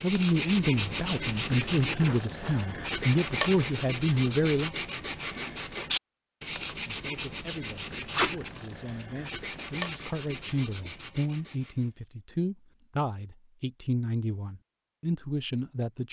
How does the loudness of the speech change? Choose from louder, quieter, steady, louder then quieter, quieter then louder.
quieter then louder.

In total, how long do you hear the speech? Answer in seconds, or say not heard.
14 s.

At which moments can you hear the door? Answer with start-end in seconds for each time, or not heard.
not heard.